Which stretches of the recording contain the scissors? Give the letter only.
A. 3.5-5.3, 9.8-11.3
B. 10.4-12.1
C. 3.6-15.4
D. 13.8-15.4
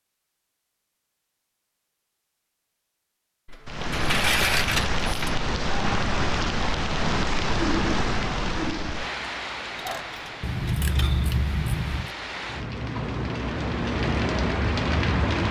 B.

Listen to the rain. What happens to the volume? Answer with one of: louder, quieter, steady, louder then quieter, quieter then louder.
quieter then louder.